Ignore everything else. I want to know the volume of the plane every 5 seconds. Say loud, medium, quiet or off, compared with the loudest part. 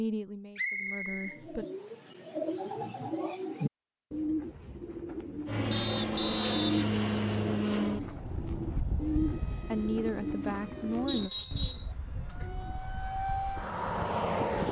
off, loud, loud.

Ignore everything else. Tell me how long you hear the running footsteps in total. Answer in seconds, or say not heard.
not heard.